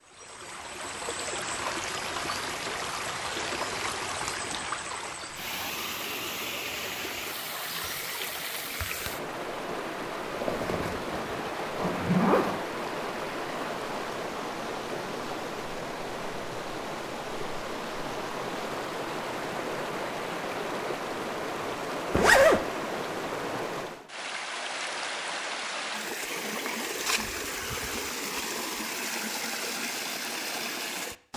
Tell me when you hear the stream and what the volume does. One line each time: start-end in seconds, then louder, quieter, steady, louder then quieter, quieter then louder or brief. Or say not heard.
0.0-31.3 steady.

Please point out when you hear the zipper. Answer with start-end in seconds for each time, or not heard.
10.2-12.6, 22.1-22.6.